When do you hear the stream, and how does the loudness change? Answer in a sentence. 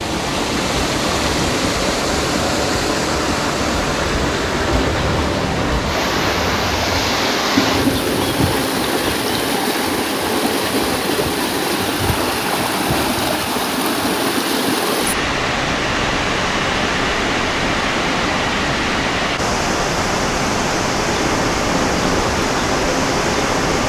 You can hear the stream from 0.0 to 23.8 s, at a steady volume.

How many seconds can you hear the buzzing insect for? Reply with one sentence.
The buzzing insect can be heard for 7 seconds in total.